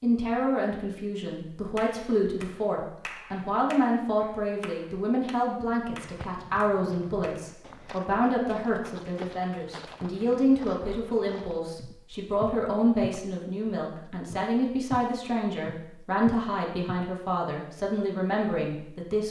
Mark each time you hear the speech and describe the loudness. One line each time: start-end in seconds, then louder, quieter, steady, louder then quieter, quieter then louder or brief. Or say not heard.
0.0-19.2 steady.